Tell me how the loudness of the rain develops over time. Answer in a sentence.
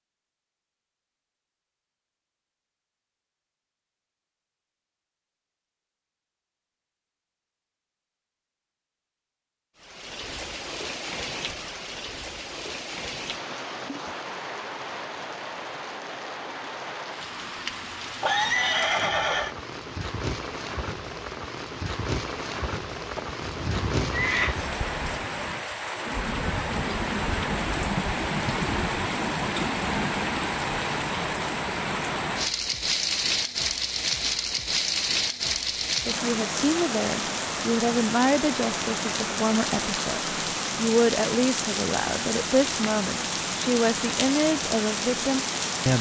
The loudness of the rain goes up.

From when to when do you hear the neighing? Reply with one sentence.
You can hear the neighing from 18.2 to 19.6 s and from 23.1 to 24.6 s.